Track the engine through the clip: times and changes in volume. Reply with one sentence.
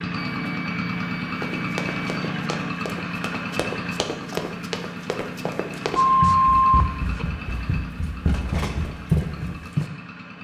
The engine can be heard from 0.0 to 10.3 s, getting quieter.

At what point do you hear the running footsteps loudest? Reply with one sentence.
The volume of the running footsteps peaks at 9 seconds.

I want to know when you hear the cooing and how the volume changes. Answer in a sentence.
You can't hear the cooing here.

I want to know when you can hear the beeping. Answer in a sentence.
The beeping can be heard from 0.1 to 2.2 s and from 6.0 to 7.2 s.